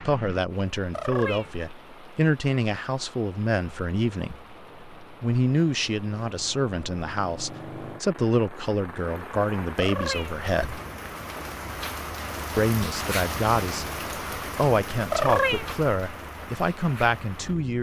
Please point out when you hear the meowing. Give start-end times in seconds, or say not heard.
0.9-1.6, 9.8-10.3, 15.1-15.7.